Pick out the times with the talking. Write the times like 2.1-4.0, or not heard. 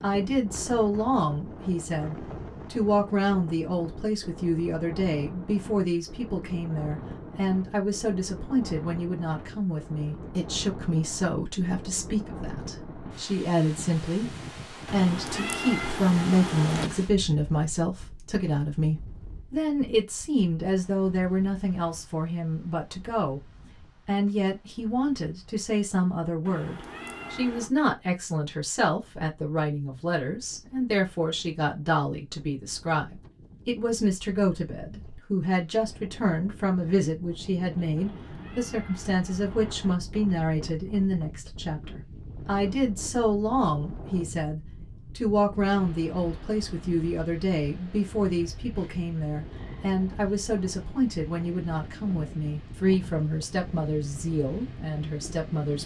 0.0-23.4, 24.1-55.8.